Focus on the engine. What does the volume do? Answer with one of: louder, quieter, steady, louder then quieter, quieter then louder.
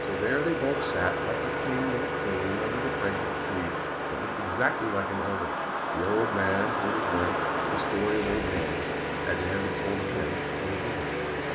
quieter then louder.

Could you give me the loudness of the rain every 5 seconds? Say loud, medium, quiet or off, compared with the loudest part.
loud, loud, medium.